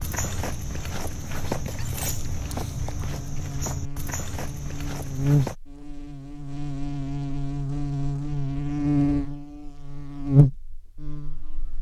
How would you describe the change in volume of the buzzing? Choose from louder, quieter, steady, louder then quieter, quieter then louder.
louder.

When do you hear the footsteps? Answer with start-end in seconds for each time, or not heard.
0.0-5.5.